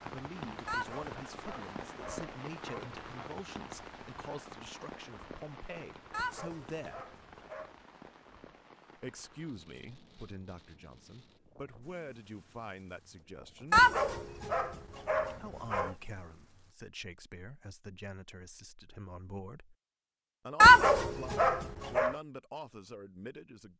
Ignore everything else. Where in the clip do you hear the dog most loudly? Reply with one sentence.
The volume of the dog peaks at 21 seconds.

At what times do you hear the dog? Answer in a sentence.
You can hear the dog from 0.7 to 3.2 s, from 6.1 to 7.7 s, from 13.7 to 15.9 s and from 20.6 to 22.1 s.